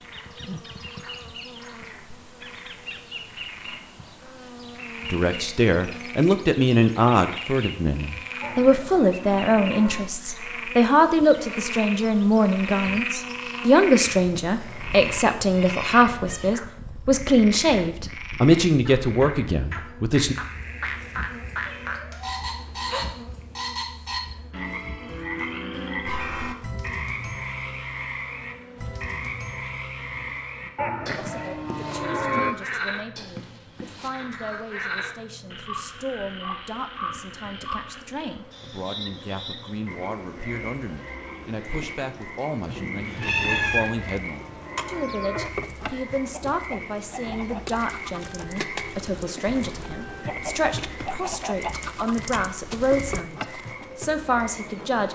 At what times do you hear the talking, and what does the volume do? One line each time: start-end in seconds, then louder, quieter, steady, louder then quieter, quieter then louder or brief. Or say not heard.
5.0-20.4 steady
31.1-55.0 louder.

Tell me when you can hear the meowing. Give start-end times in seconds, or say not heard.
14.4-16.6, 21.6-22.4, 42.7-43.8.